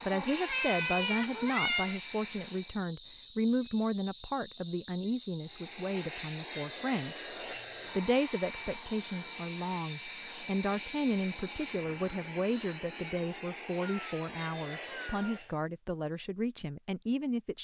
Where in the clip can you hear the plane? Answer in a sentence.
You can hear the plane from 0.0 to 2.8 s and from 5.4 to 15.6 s.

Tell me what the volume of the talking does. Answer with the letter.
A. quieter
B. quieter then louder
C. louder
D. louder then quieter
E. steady
E.